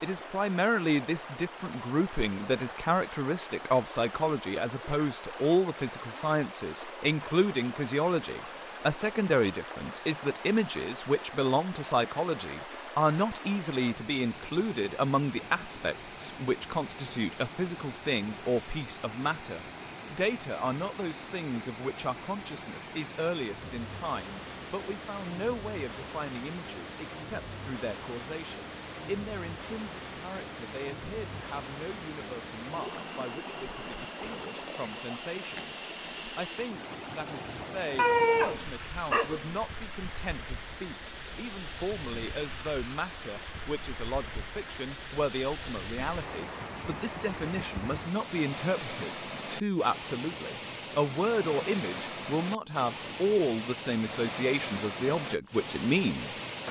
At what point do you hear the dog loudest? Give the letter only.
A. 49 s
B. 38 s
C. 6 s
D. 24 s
B.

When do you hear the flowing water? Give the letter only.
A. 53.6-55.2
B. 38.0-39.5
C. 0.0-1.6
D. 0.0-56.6
D.